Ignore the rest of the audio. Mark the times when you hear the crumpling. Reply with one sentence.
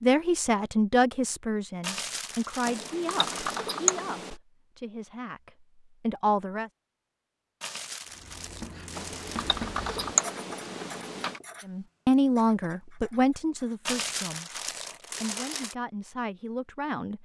You can hear the crumpling from 1.8 to 3.6 s, from 7.6 to 9.7 s and from 13.8 to 15.8 s.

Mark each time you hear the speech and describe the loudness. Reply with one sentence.
The speech can be heard from 0.0 to 6.7 s, getting quieter then louder; briefly from 11.7 to 14.4 s; and briefly from 15.2 to 17.2 s.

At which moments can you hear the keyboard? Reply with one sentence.
You can hear the keyboard from 2.6 to 4.3 s and from 8.9 to 11.4 s.